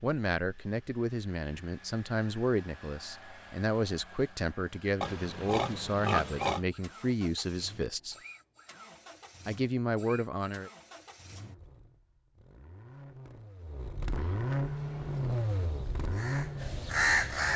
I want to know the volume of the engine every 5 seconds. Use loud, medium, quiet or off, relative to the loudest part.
quiet, quiet, medium, loud.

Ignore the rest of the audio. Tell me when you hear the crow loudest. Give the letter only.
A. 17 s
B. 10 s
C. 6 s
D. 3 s
A.